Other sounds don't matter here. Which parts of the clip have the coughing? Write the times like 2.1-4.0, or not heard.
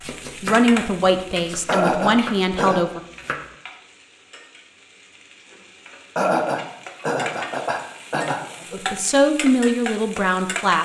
1.6-2.9, 6.2-8.8.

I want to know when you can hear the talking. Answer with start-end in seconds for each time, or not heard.
0.4-3.0, 8.7-10.7.